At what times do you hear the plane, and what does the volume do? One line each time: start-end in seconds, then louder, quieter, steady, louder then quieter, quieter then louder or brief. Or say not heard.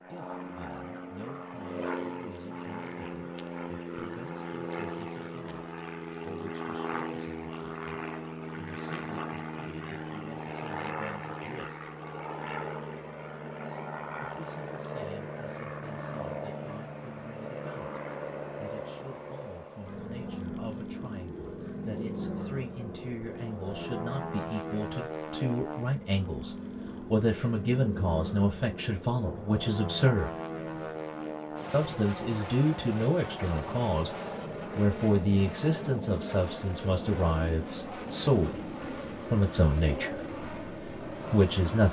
0.0-41.8 steady.